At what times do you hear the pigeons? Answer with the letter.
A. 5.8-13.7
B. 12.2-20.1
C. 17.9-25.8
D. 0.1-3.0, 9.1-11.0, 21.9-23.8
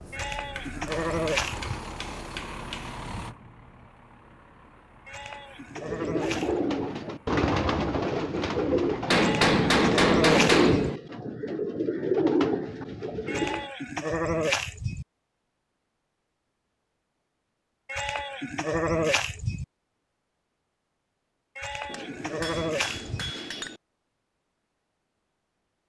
A.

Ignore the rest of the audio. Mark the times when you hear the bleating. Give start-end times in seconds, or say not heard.
0.1-1.8, 5.0-6.7, 9.2-10.9, 13.2-15.1, 17.9-19.6, 21.6-23.4.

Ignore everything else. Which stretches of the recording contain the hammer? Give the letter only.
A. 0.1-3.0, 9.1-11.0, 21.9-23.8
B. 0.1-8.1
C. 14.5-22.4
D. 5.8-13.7
A.